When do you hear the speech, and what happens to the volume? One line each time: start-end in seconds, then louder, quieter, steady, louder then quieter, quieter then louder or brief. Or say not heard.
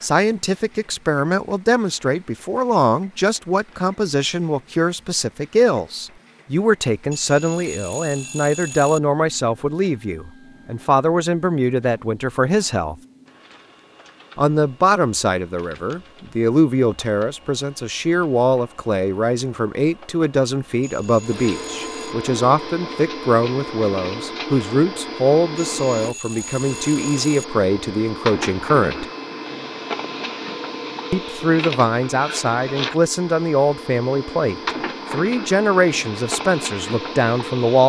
0.0-12.9 steady
14.3-29.1 steady
31.1-37.8 steady.